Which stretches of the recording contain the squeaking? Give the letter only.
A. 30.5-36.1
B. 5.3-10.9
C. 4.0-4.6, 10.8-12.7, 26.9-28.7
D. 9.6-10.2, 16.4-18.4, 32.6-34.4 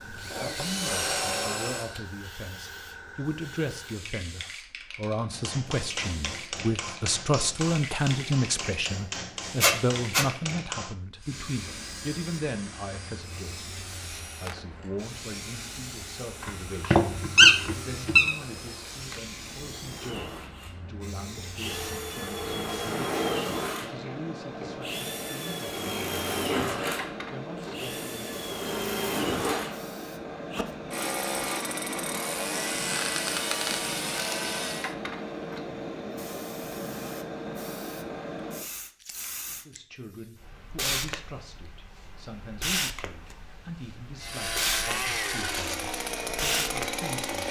D.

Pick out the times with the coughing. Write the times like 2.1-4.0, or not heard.
not heard.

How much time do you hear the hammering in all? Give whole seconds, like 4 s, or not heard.
6 s.